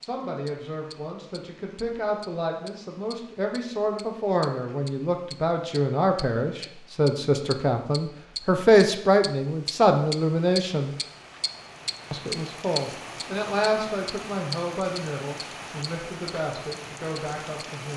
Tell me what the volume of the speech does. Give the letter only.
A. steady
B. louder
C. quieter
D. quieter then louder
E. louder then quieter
E.